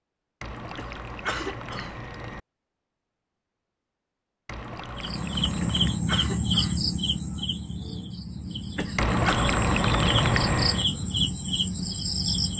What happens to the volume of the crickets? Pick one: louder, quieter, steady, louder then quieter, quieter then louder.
quieter then louder.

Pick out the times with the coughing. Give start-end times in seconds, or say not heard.
0.8-2.0, 5.6-6.8, 8.8-9.4.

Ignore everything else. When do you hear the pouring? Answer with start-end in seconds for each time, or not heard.
0.4-2.4, 4.5-6.0, 8.9-10.8.